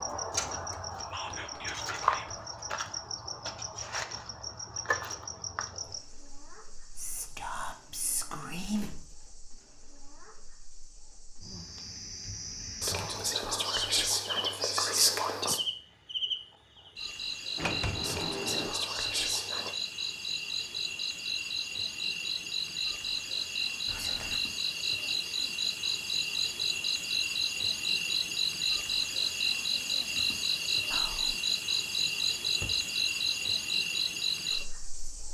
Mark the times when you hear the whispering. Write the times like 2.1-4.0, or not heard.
1.1-2.4, 7.0-8.8, 12.8-15.6, 18.0-19.8, 23.9-24.4, 30.9-31.4.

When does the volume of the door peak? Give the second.
18 s.